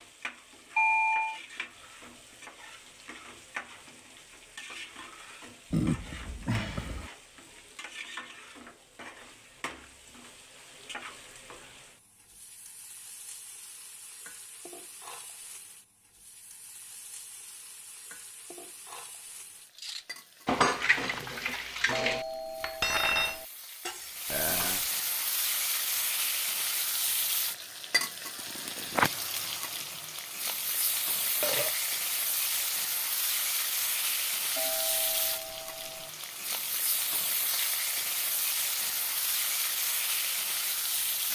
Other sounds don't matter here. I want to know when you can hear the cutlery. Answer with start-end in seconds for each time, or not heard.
19.8-24.9.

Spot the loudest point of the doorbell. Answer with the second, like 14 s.
1 s.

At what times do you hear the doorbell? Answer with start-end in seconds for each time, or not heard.
0.8-1.4, 21.9-23.4, 34.5-36.1.